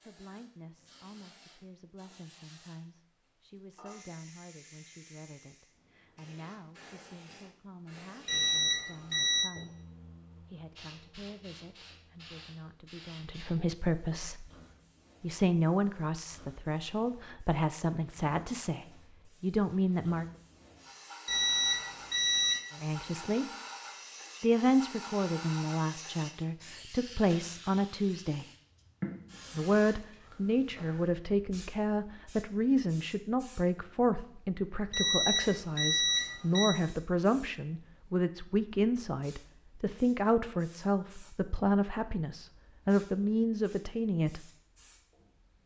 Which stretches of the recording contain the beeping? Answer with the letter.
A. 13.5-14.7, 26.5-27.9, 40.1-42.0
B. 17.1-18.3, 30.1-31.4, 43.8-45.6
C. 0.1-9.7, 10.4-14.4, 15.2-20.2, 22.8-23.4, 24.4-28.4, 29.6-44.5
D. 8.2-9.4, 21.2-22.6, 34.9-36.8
D.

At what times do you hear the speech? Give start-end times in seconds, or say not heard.
0.1-9.7, 10.4-14.4, 15.2-20.2, 22.8-23.4, 24.4-28.4, 29.6-44.5.